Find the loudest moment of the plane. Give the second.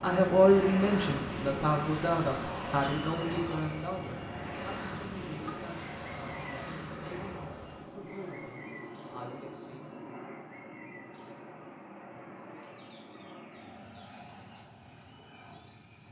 1 s.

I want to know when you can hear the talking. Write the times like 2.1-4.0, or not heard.
0.0-9.9.